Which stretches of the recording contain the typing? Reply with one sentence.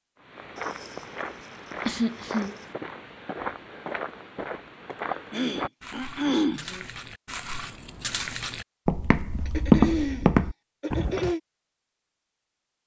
The typing can't be heard in this clip.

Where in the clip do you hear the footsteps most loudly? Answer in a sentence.
The loudest moment of the footsteps is at 10 seconds.